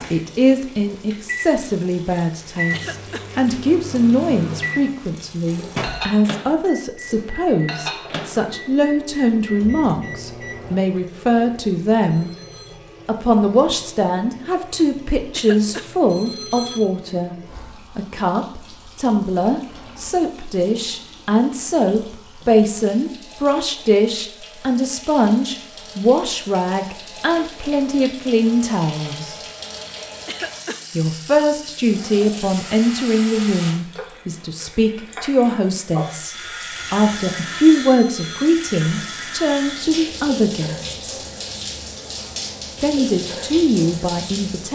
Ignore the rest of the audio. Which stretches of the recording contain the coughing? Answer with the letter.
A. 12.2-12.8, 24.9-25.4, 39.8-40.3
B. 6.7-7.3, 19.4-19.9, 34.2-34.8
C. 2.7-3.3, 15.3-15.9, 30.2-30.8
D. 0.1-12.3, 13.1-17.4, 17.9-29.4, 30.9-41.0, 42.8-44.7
C.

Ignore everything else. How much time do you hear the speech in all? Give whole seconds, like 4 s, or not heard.
40 s.